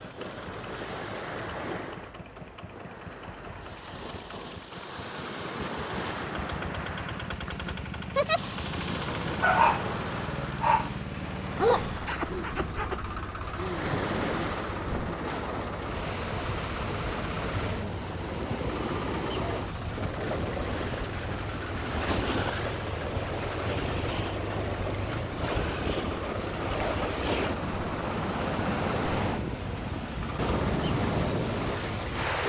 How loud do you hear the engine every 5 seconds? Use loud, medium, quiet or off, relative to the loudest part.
medium, loud, loud, loud, loud, loud, loud.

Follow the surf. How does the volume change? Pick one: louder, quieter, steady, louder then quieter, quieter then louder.
louder.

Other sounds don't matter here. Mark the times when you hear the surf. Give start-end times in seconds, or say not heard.
0.0-32.4.